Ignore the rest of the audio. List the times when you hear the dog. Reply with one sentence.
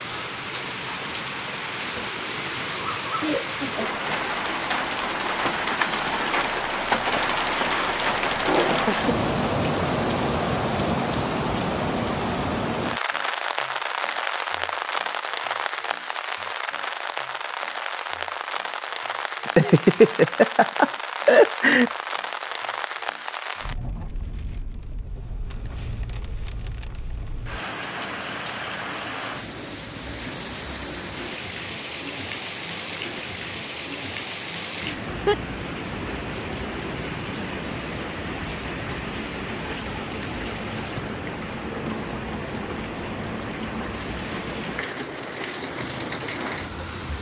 You can't hear the dog here.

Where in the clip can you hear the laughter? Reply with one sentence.
You can hear the laughter from 1.9 to 4.0 s, from 19.4 to 21.9 s and from 34.8 to 35.4 s.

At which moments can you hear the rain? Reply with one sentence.
You can hear the rain from 0.0 to 47.1 s.